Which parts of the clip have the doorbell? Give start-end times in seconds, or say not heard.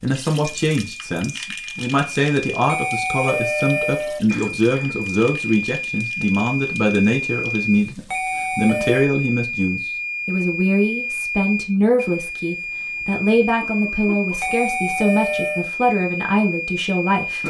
2.6-4.2, 8.1-9.1, 14.4-15.7.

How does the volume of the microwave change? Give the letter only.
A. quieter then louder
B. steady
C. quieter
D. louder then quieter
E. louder
B.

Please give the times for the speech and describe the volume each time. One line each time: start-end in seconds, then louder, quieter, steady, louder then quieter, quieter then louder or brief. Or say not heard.
0.0-17.4 steady.